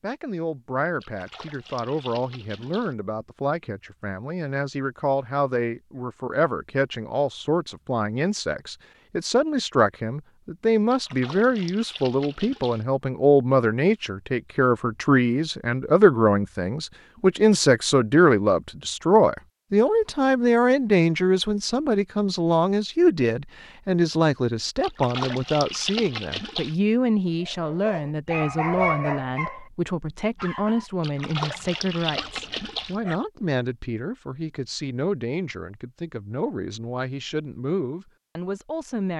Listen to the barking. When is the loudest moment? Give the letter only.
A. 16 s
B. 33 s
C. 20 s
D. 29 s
D.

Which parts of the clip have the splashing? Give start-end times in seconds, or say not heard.
1.0-3.0, 10.9-12.8, 24.8-26.8, 31.0-33.0.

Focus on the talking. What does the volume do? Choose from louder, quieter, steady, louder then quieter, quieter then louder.
louder then quieter.